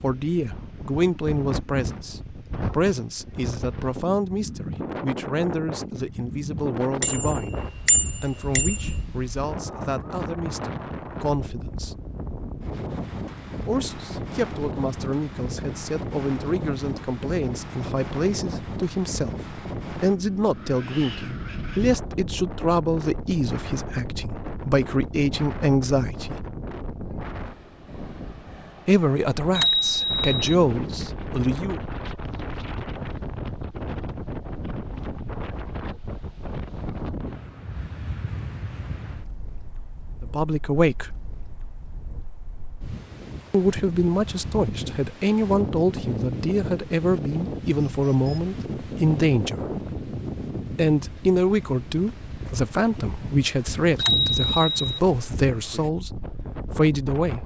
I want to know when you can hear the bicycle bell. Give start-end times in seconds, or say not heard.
7.0-9.0, 29.6-30.4, 54.0-55.0.